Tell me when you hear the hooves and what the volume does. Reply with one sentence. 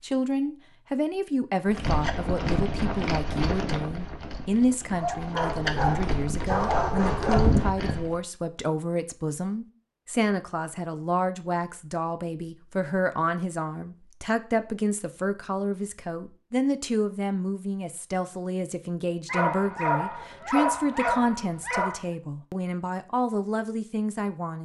You can hear the hooves from 1.6 to 8.2 s, getting quieter then louder.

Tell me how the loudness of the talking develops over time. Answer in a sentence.
The volume of the talking stays about the same.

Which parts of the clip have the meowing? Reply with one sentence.
You can't hear the meowing here.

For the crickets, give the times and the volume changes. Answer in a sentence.
You can't hear the crickets here.